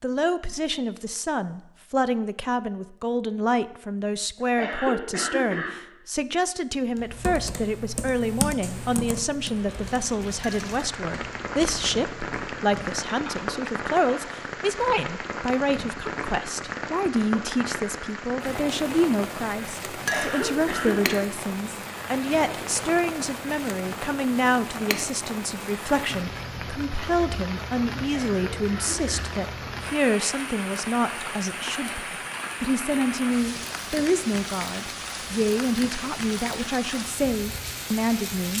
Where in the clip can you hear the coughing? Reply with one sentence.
You can hear the coughing from 4.3 to 5.8 s, from 19.9 to 21.2 s and from 28.1 to 29.3 s.